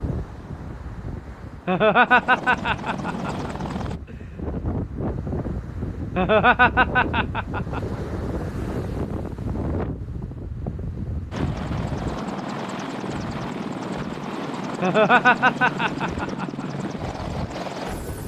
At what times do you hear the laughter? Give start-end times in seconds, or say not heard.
1.6-3.5, 6.2-7.8, 14.8-16.6.